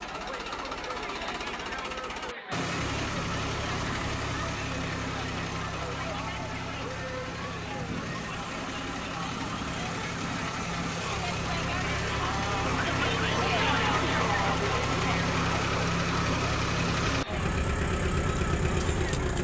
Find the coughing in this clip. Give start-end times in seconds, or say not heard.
not heard.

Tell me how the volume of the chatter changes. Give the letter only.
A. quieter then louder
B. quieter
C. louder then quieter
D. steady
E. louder
C.